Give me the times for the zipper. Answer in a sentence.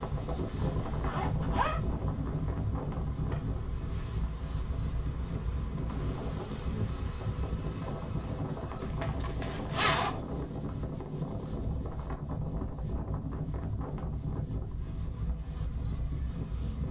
The zipper can be heard from 0.7 to 1.8 s and from 8.8 to 10.2 s.